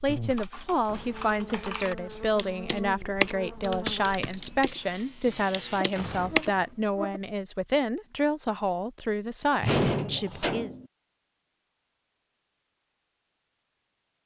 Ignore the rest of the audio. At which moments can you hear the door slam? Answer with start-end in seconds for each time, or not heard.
0.8-1.4, 5.3-6.7, 9.6-10.8.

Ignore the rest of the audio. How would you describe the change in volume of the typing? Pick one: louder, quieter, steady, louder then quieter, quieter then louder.
louder then quieter.